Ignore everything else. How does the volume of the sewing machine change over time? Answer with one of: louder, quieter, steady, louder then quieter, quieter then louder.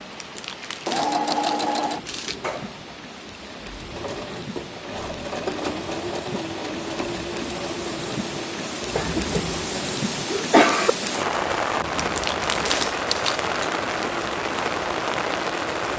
quieter.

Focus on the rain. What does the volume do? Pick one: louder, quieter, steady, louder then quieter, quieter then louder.
louder.